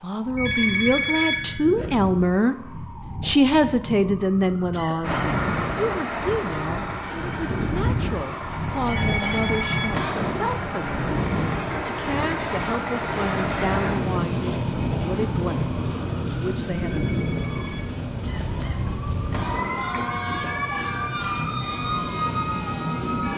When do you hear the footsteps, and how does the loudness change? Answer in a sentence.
You can't hear the footsteps here.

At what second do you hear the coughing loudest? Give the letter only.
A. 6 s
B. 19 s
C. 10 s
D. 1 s
C.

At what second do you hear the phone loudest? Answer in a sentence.
The loudest moment of the phone is at 1 second.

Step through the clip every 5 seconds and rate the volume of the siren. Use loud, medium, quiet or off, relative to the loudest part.
medium, loud, loud, loud, loud.